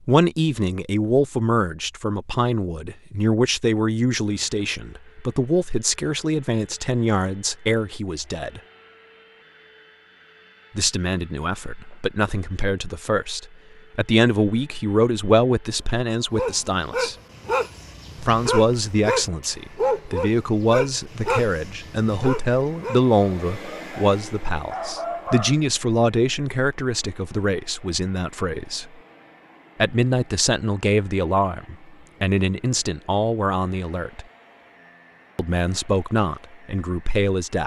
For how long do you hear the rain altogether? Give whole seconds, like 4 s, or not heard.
not heard.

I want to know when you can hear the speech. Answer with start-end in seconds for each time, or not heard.
0.1-8.6, 10.8-17.1, 18.2-28.9, 29.8-34.2, 35.4-37.6.